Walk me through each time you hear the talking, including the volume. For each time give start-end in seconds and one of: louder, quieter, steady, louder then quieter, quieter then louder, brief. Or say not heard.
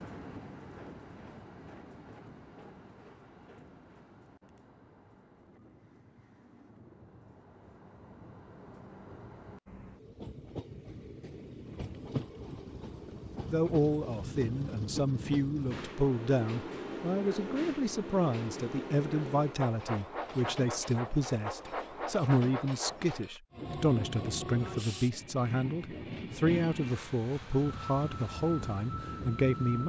13.5-29.8 steady.